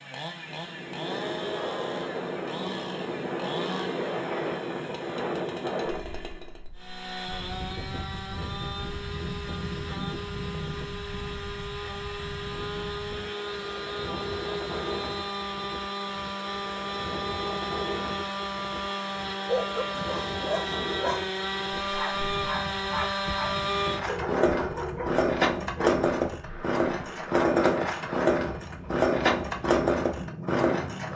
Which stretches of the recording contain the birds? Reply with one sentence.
The birds can't be heard in this clip.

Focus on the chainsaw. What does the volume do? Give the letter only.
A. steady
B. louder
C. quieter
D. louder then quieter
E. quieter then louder
B.